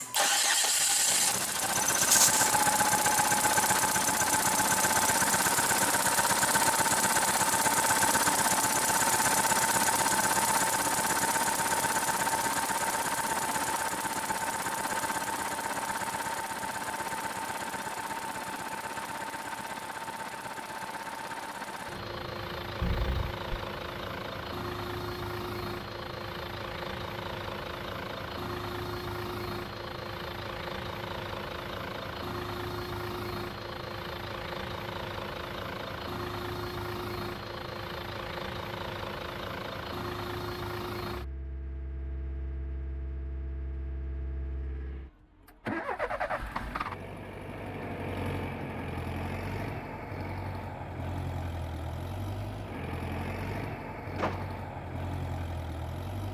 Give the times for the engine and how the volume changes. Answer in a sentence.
You can hear the engine from 0.0 to 56.2 s, getting quieter.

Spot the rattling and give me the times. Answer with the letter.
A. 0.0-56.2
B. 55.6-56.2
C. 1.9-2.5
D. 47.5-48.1
C.